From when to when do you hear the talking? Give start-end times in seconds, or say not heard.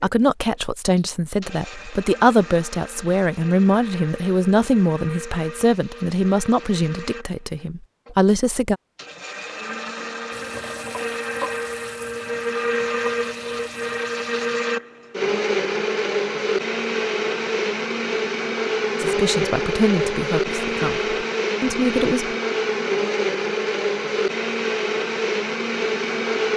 0.0-8.8, 19.0-22.4.